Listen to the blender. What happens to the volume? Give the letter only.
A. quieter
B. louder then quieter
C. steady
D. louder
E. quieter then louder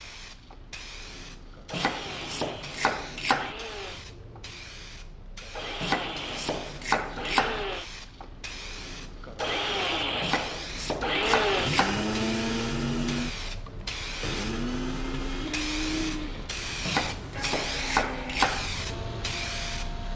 B.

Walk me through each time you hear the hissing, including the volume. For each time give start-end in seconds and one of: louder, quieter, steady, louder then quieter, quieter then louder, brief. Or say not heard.
0.0-20.1 louder.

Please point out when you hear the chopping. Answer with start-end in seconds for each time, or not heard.
1.7-3.5, 5.8-7.7, 10.2-12.1, 16.9-18.7.